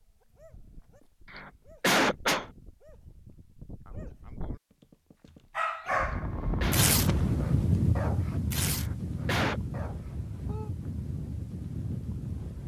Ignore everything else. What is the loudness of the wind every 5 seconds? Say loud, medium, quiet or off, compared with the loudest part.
off, loud, medium.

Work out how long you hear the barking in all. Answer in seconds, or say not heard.
10 s.